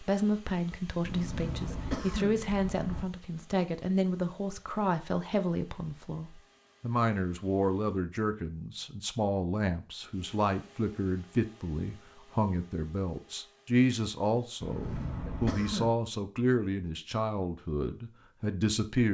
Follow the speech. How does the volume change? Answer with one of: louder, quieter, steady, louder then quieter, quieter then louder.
steady.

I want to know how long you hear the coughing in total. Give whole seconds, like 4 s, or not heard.
3 s.